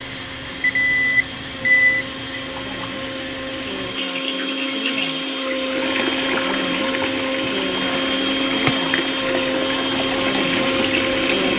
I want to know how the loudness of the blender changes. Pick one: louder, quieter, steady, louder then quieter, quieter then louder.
louder.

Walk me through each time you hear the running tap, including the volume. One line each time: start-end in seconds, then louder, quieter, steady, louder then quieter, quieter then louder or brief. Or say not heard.
0.0-11.5 louder.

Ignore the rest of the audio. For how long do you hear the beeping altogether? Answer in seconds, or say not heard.
2 s.